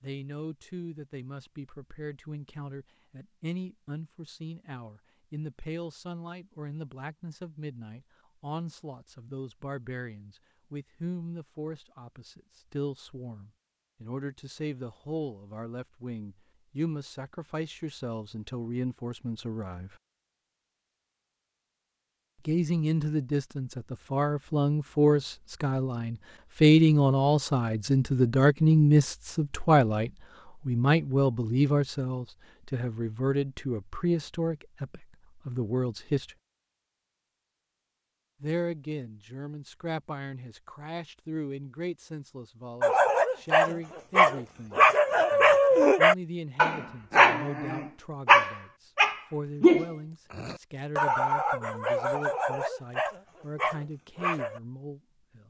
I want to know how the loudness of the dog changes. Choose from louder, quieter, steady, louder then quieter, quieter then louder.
quieter.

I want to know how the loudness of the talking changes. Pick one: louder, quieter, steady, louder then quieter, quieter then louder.
louder then quieter.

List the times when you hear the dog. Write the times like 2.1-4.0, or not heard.
42.8-54.6.